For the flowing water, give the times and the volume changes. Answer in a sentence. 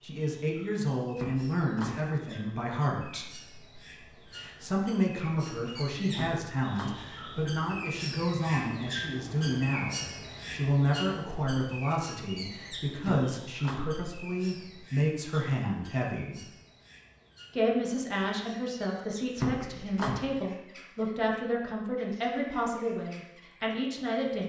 You can't hear the flowing water here.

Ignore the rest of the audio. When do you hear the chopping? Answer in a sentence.
The chopping can be heard from 1.1 to 2.1 s, from 6.1 to 7.1 s, from 13.0 to 14.0 s and from 19.4 to 20.3 s.